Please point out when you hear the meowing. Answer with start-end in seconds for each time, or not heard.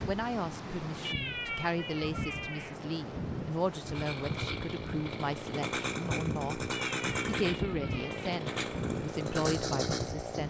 1.1-2.8, 6.7-8.3.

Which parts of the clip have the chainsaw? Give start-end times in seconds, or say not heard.
3.9-10.4.